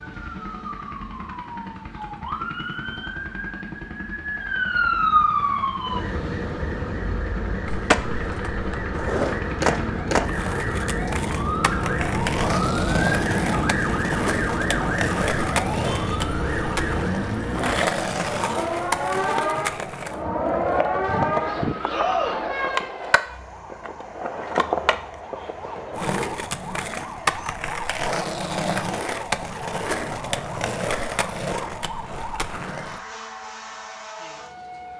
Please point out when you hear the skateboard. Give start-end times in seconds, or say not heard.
7.7-33.0.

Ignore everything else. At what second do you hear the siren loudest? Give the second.
5 s.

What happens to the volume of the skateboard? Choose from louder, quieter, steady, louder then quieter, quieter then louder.
steady.